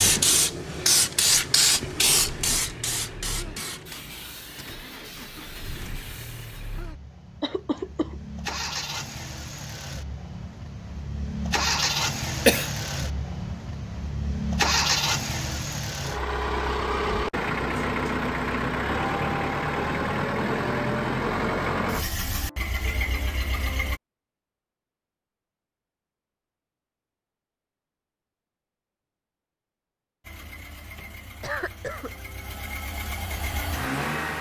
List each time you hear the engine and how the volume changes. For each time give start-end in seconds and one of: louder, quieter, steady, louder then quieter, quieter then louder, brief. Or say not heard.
0.0-24.0 louder
30.2-34.3 louder.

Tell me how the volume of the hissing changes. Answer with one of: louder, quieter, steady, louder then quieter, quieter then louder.
quieter.